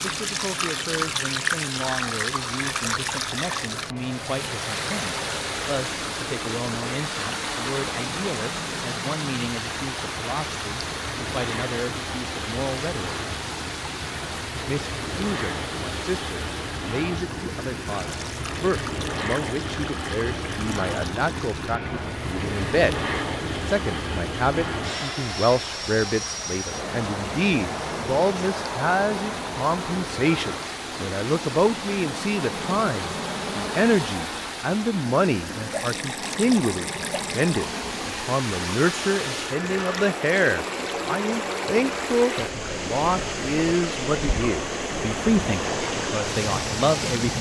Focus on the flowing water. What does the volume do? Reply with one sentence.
The loudness of the flowing water goes down, then up.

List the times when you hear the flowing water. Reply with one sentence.
The flowing water can be heard from 0.0 to 47.3 s.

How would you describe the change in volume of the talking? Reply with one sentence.
The loudness of the talking goes up.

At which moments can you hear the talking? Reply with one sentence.
The talking can be heard from 0.0 to 13.2 s and from 14.7 to 47.3 s.